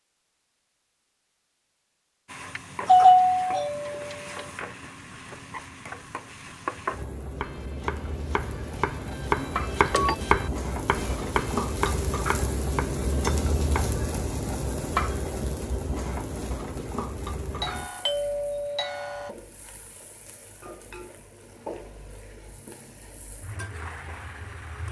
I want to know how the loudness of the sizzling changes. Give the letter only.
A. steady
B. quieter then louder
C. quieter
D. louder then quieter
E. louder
D.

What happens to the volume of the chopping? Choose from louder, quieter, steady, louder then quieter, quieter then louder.
louder then quieter.